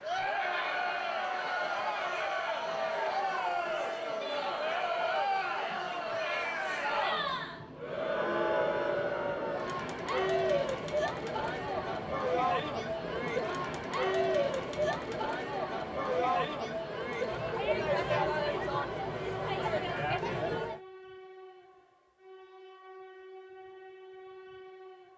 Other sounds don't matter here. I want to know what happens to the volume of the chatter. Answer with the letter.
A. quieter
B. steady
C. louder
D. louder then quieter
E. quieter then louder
B.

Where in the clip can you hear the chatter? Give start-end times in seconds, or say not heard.
0.0-20.8.